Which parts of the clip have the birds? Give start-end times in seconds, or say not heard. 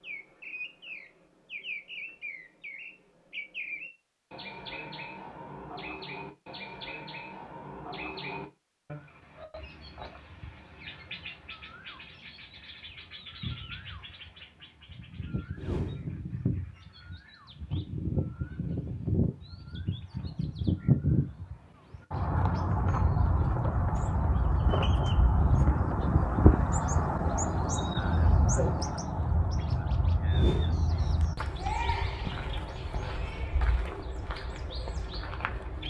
0.0-35.8.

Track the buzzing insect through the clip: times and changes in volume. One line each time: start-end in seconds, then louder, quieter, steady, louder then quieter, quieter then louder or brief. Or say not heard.
not heard.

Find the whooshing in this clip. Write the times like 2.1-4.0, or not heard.
15.6-16.1, 30.3-30.8.